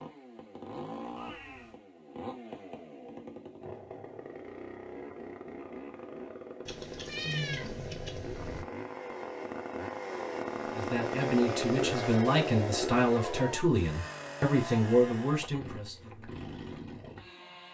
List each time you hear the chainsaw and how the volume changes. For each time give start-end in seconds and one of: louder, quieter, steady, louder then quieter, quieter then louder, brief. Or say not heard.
0.0-17.6 louder then quieter.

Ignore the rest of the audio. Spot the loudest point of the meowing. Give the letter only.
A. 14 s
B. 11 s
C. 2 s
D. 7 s
D.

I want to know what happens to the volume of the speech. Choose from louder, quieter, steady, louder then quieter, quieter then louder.
steady.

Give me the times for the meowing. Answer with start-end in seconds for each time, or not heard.
1.1-1.8, 6.7-8.7, 13.2-13.7.